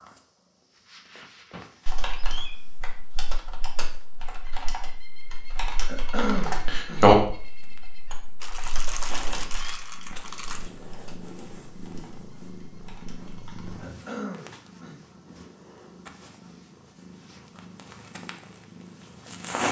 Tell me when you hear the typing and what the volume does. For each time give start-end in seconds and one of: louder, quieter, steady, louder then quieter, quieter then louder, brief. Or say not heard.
1.9-13.8 louder then quieter.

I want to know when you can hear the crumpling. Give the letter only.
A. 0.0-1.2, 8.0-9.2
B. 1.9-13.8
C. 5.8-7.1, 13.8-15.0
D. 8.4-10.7
D.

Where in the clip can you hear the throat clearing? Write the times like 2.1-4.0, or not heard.
5.8-7.1, 13.8-15.0.